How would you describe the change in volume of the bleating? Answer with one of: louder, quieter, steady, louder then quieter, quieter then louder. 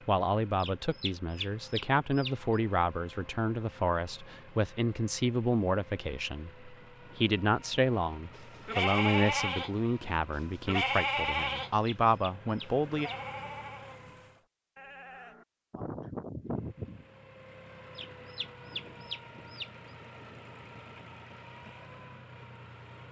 quieter then louder.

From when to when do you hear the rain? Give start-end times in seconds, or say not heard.
not heard.